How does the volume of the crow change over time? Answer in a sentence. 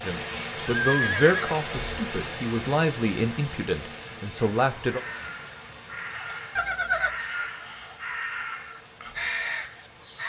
The volume of the crow goes up.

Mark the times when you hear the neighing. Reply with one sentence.
The neighing can be heard from 0.7 to 1.5 s and from 6.5 to 7.2 s.